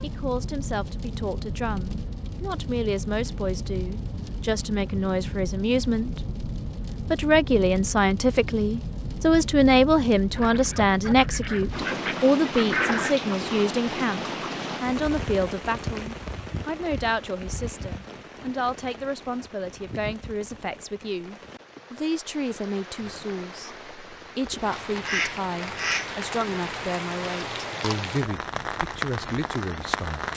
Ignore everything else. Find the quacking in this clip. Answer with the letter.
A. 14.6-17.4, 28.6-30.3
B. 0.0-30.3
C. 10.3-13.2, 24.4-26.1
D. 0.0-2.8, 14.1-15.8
C.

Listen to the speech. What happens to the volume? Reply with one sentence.
The volume of the speech goes up, then down.